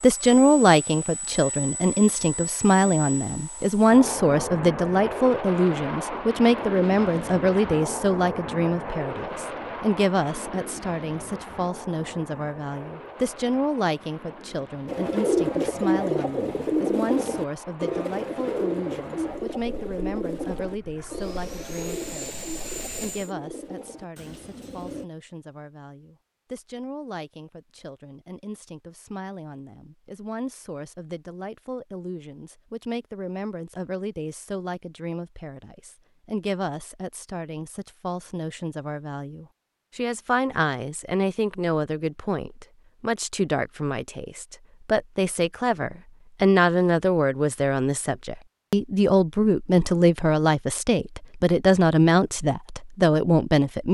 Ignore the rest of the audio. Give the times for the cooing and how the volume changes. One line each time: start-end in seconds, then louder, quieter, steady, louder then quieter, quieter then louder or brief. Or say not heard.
14.8-25.1 quieter.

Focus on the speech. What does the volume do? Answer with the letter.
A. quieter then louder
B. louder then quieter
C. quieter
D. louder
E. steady
A.